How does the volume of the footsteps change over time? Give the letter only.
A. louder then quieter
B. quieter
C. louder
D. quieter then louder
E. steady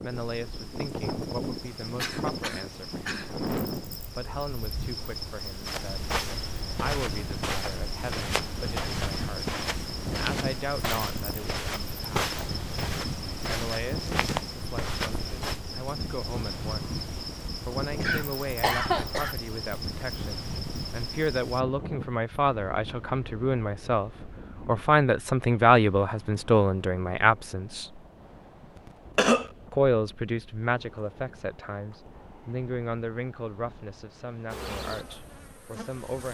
E.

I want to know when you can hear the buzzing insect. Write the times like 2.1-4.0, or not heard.
0.0-21.6, 34.5-36.3.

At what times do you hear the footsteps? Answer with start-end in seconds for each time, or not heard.
5.7-15.6.